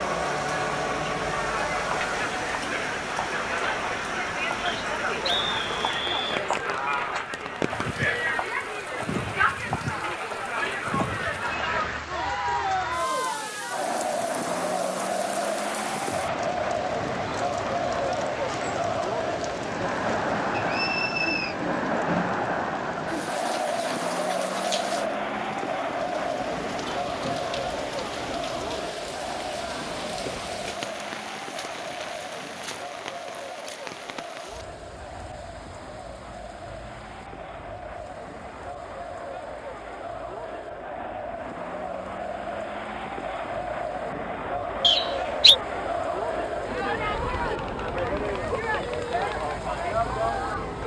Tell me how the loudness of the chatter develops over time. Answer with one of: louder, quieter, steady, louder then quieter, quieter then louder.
quieter then louder.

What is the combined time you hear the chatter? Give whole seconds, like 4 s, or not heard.
51 s.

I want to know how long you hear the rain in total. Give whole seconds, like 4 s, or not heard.
51 s.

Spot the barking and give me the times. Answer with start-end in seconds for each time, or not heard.
not heard.